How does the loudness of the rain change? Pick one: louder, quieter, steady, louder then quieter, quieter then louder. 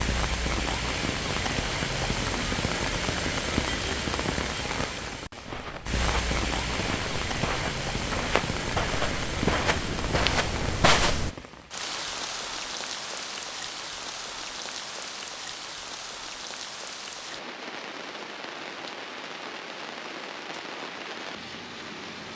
quieter.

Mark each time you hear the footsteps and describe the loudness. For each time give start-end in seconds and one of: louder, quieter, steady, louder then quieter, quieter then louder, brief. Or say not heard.
5.5-11.3 louder.